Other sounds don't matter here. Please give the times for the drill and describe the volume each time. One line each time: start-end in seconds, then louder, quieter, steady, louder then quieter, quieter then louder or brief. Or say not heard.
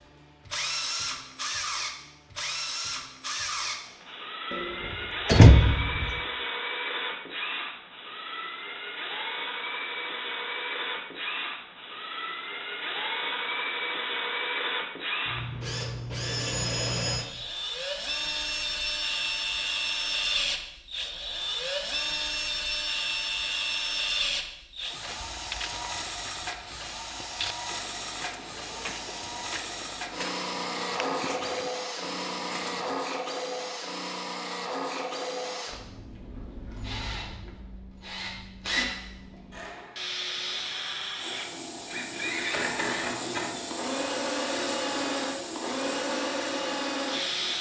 0.1-47.5 steady.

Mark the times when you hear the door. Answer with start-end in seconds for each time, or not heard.
5.2-6.2.